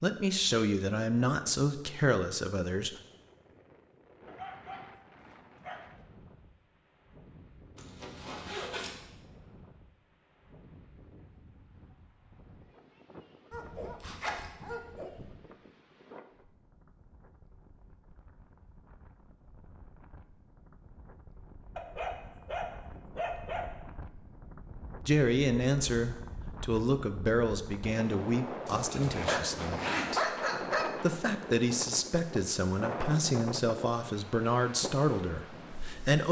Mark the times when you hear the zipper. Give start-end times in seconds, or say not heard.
7.8-9.0, 14.0-14.5, 28.6-30.2.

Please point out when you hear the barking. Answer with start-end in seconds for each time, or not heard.
4.2-6.0, 13.5-15.5, 21.8-23.7, 28.9-31.1.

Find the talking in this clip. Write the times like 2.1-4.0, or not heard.
0.0-3.0, 25.0-36.2.